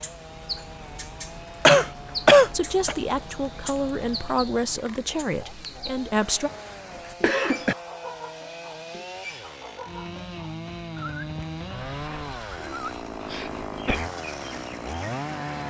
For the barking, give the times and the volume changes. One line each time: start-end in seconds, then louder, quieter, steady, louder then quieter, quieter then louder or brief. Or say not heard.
not heard.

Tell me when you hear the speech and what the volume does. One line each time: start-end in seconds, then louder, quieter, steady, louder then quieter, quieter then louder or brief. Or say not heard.
2.4-6.5 quieter.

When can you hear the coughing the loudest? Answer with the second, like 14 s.
2 s.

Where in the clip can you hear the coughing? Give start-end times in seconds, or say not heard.
1.6-3.0, 7.0-7.8, 12.6-14.1.